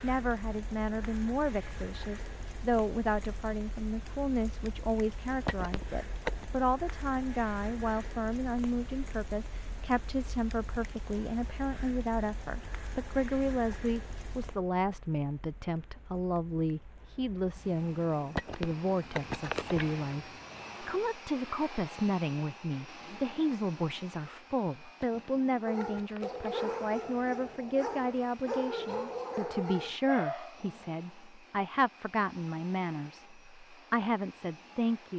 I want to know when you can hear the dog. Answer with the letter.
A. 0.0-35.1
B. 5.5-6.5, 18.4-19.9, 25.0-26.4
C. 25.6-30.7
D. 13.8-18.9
C.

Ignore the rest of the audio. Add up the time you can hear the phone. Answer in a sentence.
You can hear the phone for 4 seconds altogether.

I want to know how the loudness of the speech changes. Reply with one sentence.
The loudness of the speech stays about the same.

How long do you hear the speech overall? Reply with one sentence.
You can hear the speech for 35 seconds altogether.